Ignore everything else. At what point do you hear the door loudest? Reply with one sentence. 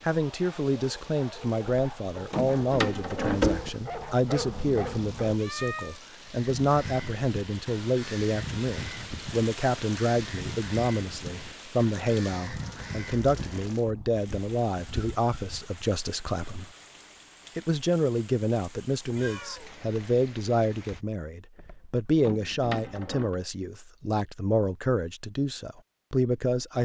The loudest moment of the door is at 3 seconds.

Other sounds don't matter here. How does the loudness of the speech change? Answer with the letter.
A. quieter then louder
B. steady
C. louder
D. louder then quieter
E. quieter
B.